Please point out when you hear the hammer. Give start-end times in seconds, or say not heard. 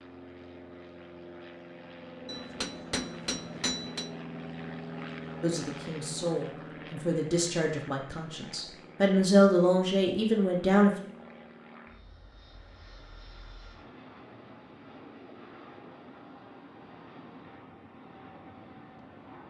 2.2-4.1.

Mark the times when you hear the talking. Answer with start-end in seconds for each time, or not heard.
5.4-10.9.